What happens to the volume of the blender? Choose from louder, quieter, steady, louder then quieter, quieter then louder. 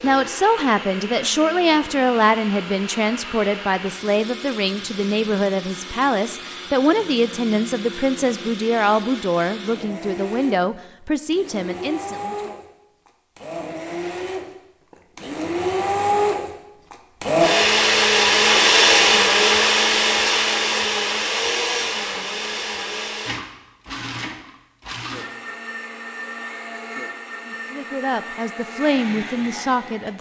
louder then quieter.